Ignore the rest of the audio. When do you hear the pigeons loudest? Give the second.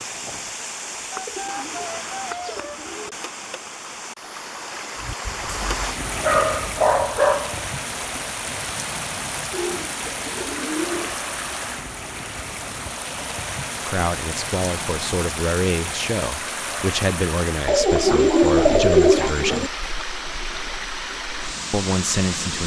19 s.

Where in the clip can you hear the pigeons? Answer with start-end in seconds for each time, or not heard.
1.1-3.1, 9.5-11.2, 17.6-19.7.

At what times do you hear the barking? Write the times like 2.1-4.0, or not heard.
5.0-7.6.